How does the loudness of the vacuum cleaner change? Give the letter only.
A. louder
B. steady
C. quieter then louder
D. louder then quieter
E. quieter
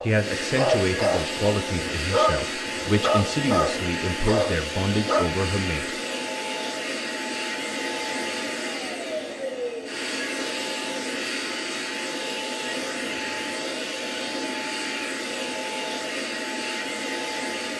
B.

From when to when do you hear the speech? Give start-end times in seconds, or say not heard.
0.0-6.0.